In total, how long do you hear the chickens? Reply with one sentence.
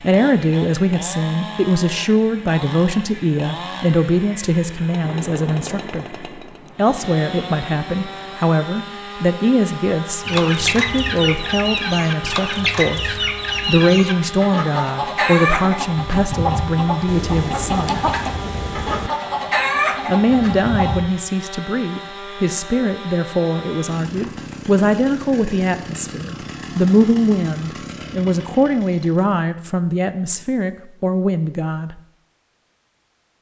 You can hear the chickens for 11 seconds altogether.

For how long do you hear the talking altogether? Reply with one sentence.
You can hear the talking for 30 seconds altogether.